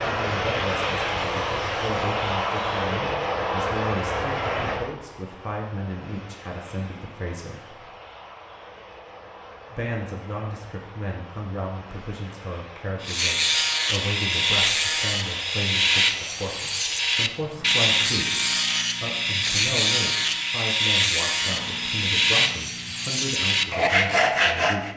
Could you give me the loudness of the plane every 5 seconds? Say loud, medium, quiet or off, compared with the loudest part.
loud, quiet, quiet, quiet, quiet.